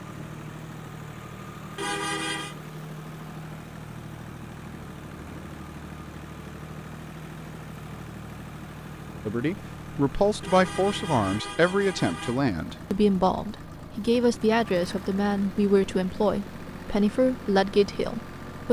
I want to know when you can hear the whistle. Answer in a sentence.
You can't hear the whistle here.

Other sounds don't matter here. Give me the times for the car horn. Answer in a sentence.
You can hear the car horn from 1.8 to 2.5 s and from 10.4 to 12.4 s.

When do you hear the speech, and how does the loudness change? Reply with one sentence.
You can hear the speech from 9.2 to 18.6 s, at a steady volume.